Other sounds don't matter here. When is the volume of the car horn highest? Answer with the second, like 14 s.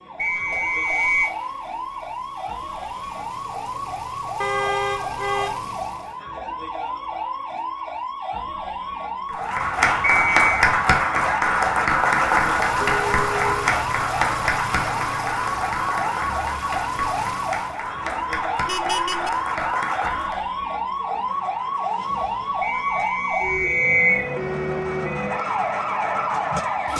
5 s.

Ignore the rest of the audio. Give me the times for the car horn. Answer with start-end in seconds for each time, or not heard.
4.4-5.5, 12.8-13.6, 18.6-19.3.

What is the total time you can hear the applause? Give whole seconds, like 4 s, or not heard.
11 s.